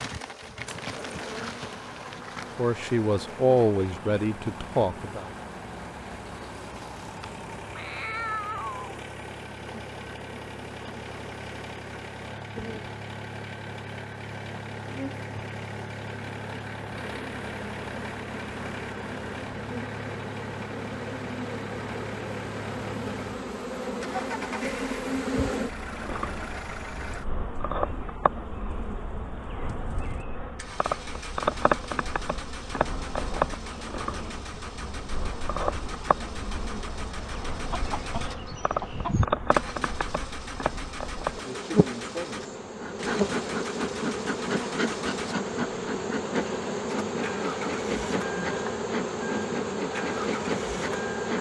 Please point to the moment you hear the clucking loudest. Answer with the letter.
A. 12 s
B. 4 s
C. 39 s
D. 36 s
C.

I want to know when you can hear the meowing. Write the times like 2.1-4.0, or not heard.
7.7-9.0.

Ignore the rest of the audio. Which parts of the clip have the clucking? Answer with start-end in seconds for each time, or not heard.
37.7-39.2.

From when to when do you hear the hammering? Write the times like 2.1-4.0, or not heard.
not heard.